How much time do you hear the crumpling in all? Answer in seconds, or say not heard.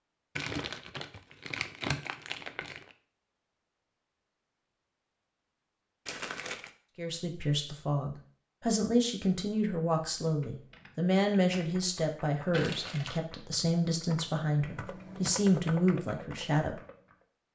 4 s.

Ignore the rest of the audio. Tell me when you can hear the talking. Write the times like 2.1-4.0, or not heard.
7.0-16.8.